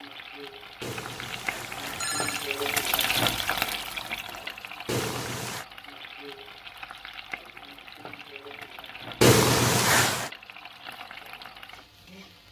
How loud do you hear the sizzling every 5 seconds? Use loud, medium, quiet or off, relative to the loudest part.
loud, medium, quiet.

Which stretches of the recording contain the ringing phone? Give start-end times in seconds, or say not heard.
0.8-2.5, 4.8-5.7, 9.2-10.3.